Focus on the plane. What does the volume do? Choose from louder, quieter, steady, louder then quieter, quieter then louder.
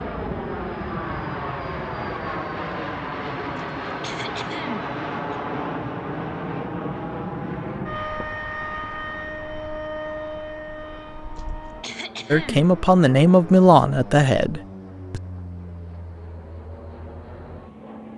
quieter.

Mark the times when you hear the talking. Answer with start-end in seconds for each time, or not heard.
12.3-15.2.